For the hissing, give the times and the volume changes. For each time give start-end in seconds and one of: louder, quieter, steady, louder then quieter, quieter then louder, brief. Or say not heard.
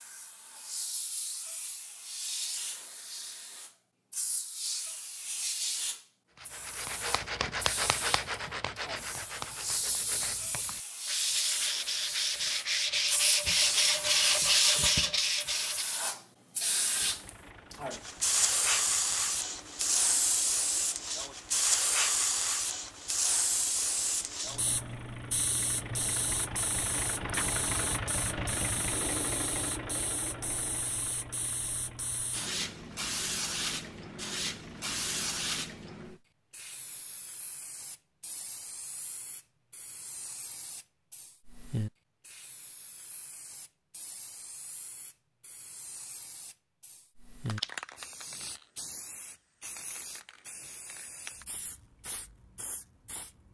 0.0-53.4 louder then quieter.